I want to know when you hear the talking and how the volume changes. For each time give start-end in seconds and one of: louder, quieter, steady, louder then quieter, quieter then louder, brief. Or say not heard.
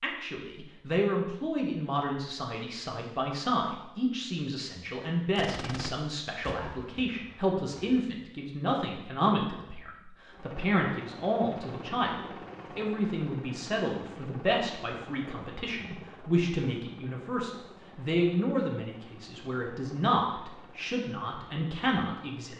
0.0-22.5 steady.